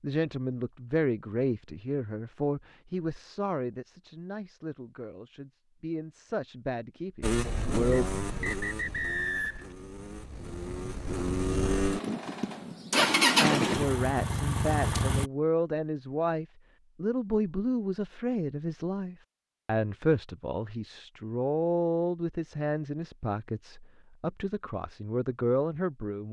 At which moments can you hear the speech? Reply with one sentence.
You can hear the speech from 0.0 to 8.1 s and from 13.4 to 26.2 s.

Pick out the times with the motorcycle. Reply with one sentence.
You can hear the motorcycle from 7.2 to 15.3 s.